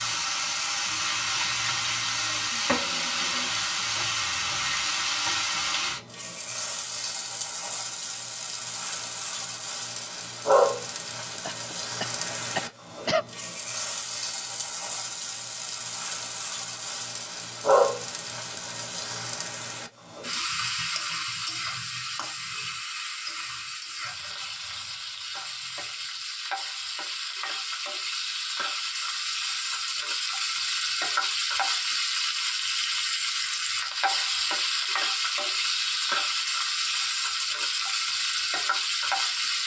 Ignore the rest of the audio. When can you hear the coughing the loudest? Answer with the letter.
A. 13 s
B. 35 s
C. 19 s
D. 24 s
A.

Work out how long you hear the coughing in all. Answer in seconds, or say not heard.
2 s.